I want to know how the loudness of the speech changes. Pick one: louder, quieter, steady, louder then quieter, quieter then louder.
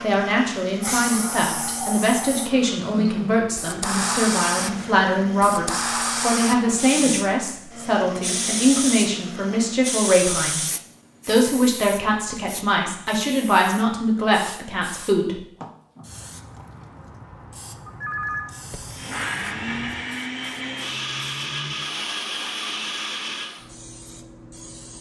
steady.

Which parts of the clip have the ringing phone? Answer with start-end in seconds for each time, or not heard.
17.9-19.0.